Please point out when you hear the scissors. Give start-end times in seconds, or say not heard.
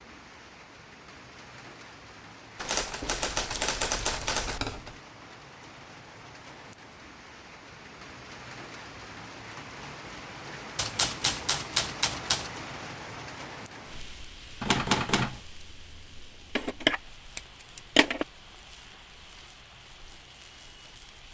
3.0-5.0, 16.6-18.2.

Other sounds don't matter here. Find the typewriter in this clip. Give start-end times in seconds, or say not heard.
2.5-4.6, 10.8-12.5, 14.6-15.4.